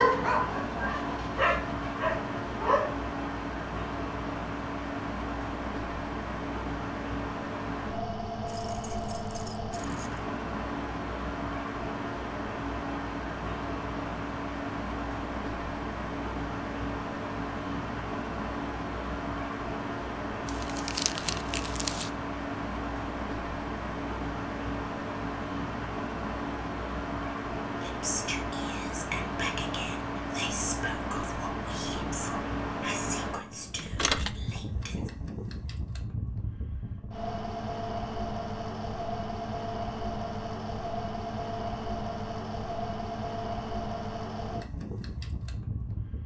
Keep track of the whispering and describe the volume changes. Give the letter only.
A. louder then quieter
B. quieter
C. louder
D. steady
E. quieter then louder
B.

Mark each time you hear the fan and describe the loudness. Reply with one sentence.
You can hear the fan from 0.0 to 46.2 s, at a steady volume.